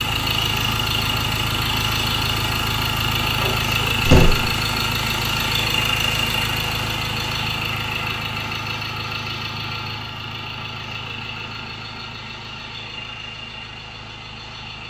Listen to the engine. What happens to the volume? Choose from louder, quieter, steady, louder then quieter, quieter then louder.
quieter.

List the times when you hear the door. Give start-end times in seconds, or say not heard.
3.2-4.5.